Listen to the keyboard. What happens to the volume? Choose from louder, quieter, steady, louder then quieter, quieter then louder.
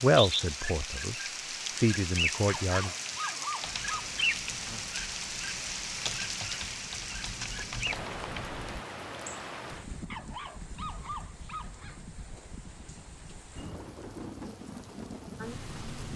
louder.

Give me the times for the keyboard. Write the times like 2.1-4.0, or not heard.
3.6-8.8.